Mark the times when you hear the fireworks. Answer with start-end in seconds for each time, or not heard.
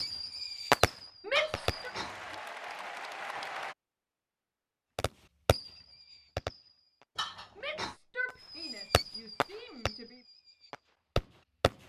0.0-1.9, 5.0-7.0, 8.4-11.7.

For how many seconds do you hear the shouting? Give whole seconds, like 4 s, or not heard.
3 s.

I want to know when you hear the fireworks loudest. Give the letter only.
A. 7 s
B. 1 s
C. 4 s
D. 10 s
B.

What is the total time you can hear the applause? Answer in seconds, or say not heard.
2 s.